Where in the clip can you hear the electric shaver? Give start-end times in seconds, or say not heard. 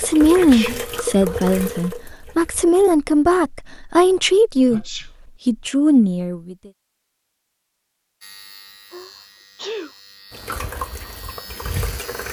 8.2-12.2.